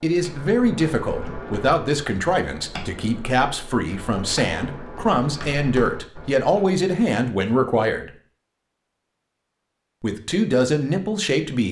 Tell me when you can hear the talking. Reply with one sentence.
The talking can be heard from 0.0 to 8.1 s and from 10.0 to 11.6 s.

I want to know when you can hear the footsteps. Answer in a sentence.
You can't hear the footsteps here.